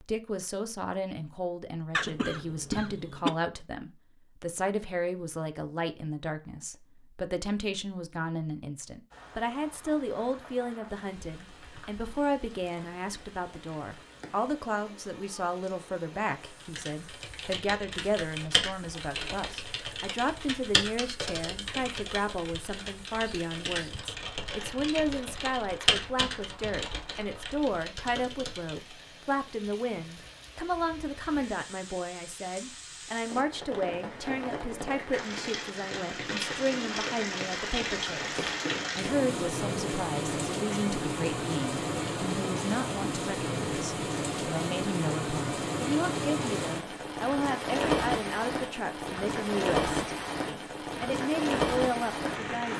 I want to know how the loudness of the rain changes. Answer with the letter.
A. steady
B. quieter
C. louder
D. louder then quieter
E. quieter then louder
C.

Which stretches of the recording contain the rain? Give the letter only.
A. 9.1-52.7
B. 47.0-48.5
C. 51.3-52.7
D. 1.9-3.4
A.